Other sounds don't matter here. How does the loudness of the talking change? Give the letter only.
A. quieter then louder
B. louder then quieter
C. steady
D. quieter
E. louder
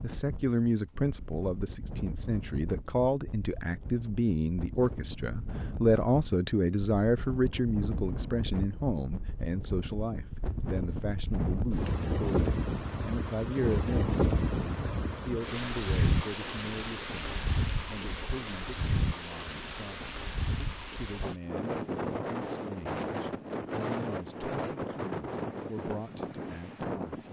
D.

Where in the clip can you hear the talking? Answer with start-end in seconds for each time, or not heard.
0.0-27.2.